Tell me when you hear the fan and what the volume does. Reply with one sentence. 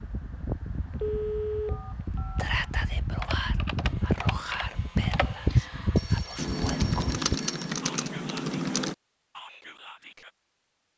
You can hear the fan from 0.0 to 7.3 s, getting louder.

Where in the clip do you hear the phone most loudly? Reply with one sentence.
The loudest moment of the phone is at 1 second.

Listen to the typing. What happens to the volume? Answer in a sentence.
The volume of the typing goes up.